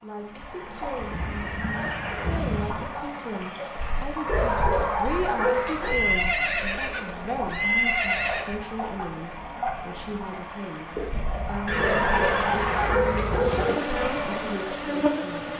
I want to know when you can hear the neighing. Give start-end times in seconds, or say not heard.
1.0-2.9, 5.8-8.6, 11.7-12.9.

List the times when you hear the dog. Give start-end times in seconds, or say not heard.
4.2-6.0, 11.8-13.8.